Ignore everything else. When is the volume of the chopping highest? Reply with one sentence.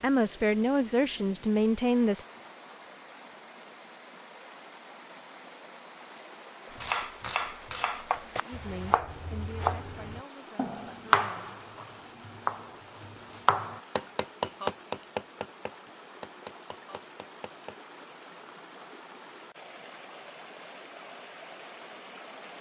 The volume of the chopping peaks at 11 seconds.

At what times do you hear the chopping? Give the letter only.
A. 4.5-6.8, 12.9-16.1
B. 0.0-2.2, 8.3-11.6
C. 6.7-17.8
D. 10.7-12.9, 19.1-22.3
C.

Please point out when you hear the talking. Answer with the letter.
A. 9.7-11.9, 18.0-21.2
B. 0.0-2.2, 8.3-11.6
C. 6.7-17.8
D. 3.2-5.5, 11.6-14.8
B.